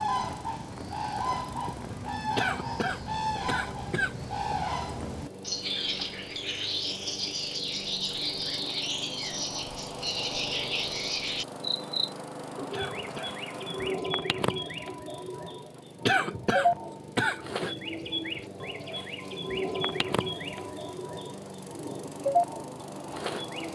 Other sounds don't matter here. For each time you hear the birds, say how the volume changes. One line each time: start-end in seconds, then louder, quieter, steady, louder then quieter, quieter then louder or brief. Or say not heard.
0.0-23.7 steady.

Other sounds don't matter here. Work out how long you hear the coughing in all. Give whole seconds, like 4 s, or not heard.
4 s.